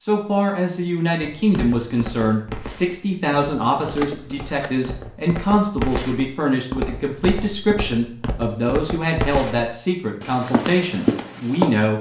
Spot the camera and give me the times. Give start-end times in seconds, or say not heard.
4.0-4.8.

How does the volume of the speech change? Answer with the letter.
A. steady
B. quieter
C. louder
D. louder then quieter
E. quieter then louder
A.